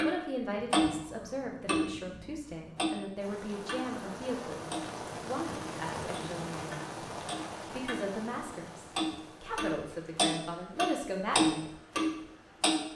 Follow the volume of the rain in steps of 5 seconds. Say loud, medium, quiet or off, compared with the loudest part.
loud, loud, quiet.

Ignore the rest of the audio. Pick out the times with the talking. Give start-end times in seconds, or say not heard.
0.0-4.7, 5.2-7.0, 7.7-11.7.